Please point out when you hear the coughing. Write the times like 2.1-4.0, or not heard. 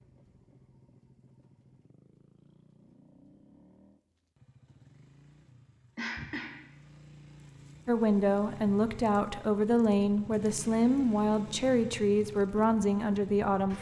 6.0-6.7.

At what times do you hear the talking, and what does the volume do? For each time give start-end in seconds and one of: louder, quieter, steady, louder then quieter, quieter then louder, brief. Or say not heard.
7.8-13.7 steady.